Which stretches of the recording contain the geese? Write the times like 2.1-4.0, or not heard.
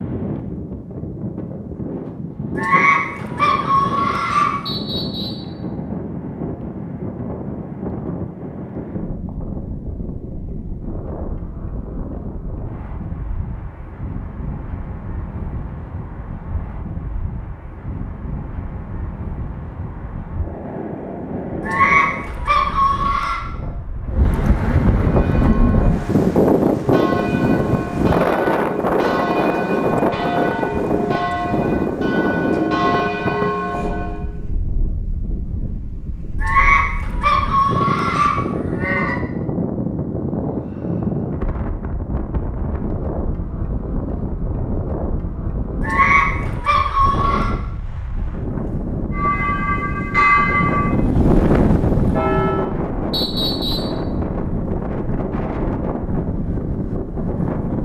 2.5-4.5, 21.6-23.4, 36.4-39.2, 45.8-47.5.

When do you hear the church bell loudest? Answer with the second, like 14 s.
50 s.